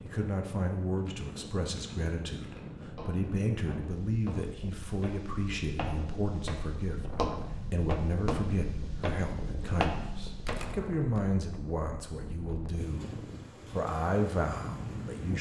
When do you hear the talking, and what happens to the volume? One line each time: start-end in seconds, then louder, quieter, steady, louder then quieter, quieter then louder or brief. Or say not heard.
0.0-15.3 steady.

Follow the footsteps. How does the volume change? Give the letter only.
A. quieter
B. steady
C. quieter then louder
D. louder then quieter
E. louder
E.